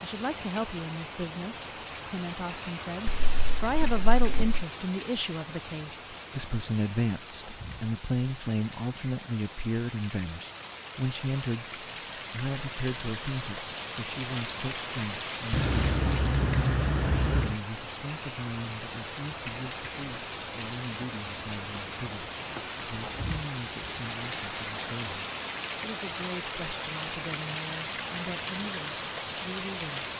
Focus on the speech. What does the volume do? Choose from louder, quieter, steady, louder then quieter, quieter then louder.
quieter.